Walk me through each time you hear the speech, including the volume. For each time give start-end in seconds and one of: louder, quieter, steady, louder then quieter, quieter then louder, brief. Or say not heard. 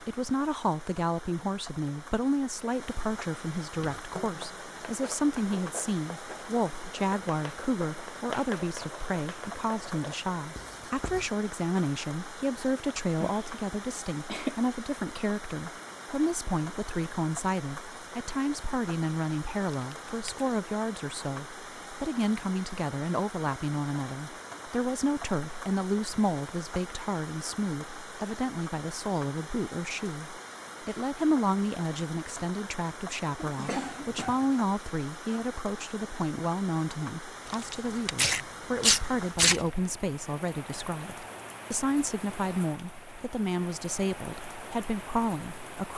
0.0-45.9 steady.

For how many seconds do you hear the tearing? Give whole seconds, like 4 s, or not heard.
3 s.